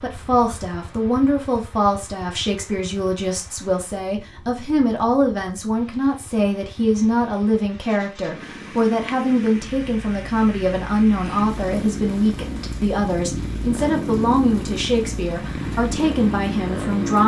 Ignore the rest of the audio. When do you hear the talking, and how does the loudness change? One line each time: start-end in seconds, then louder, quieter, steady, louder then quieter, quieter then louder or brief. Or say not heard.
0.0-17.2 steady.